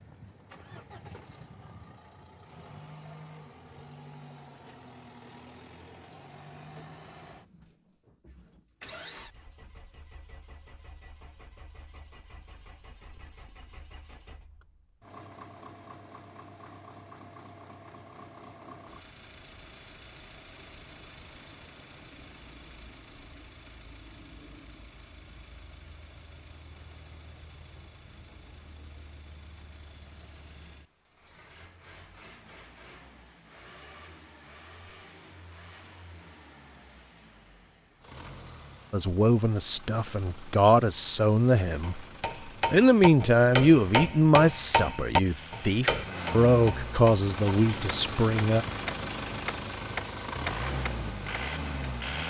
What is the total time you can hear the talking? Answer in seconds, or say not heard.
9 s.